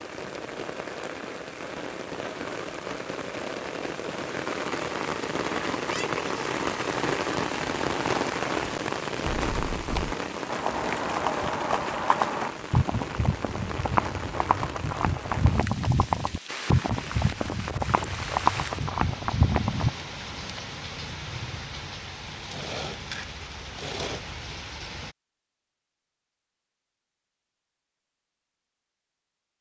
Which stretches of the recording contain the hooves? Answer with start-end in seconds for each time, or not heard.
9.2-19.9.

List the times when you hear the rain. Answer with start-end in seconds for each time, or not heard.
0.0-25.1.